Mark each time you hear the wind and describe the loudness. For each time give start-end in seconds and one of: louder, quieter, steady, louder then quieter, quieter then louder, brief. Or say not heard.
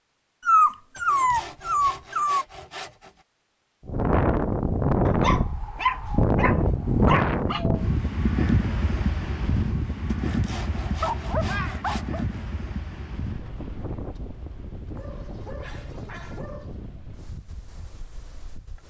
3.9-18.8 quieter.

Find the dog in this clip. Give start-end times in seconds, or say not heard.
0.4-2.5, 5.0-7.7, 10.8-12.2, 14.9-16.8.